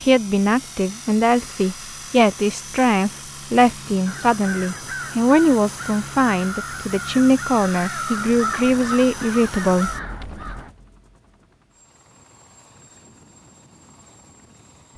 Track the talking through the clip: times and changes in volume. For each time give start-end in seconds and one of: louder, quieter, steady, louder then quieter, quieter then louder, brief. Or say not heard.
0.0-10.0 steady.